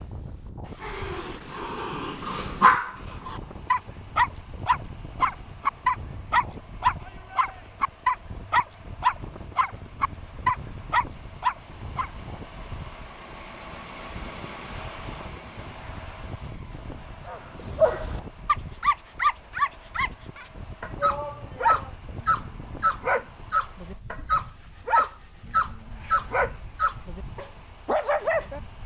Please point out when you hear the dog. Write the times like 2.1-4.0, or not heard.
0.8-12.1, 17.2-28.6.